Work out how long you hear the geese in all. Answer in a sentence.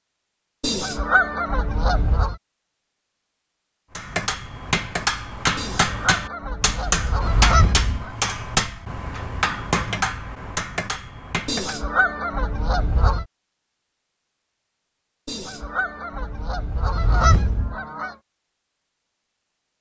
You can hear the geese for 9 seconds altogether.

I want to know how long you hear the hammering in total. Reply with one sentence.
You can hear the hammering for 8 seconds altogether.